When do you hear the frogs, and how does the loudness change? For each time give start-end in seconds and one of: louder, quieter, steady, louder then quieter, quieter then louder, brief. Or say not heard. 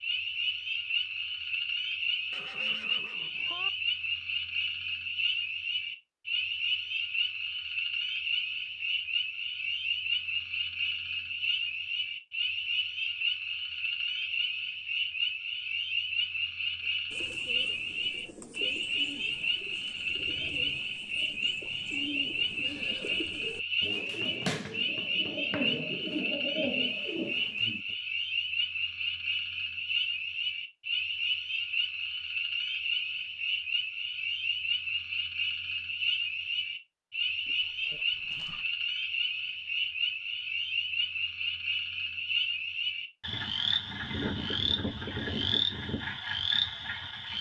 0.0-47.3 steady.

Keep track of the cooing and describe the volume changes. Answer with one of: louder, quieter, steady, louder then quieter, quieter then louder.
louder.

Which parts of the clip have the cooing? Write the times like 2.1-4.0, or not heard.
17.1-27.9.